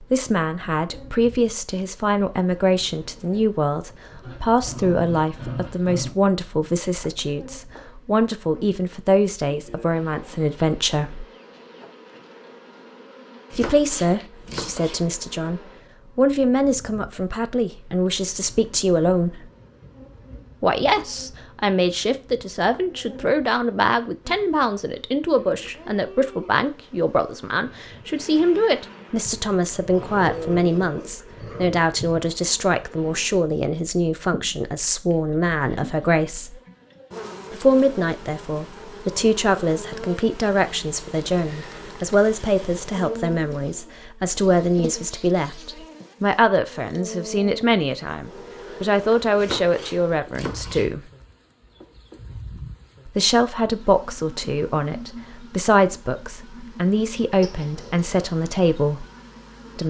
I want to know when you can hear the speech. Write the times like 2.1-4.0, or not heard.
0.0-11.2, 13.5-19.5, 20.6-36.6, 37.5-51.1, 53.0-59.0.